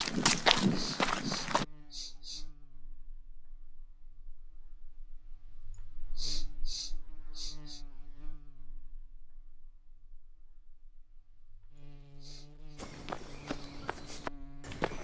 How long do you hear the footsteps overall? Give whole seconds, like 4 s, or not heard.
4 s.